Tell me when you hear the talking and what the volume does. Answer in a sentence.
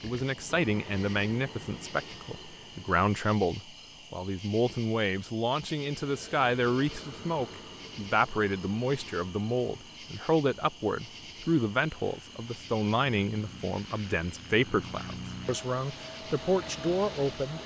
You can hear the talking from 0.0 to 17.6 s, at a steady volume.